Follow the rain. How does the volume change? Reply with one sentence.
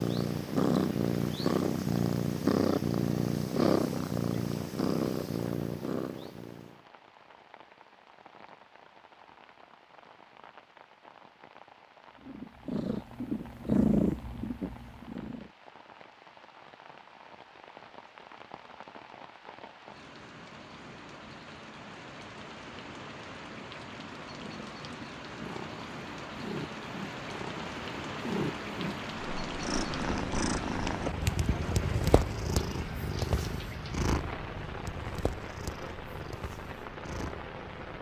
The volume of the rain goes up.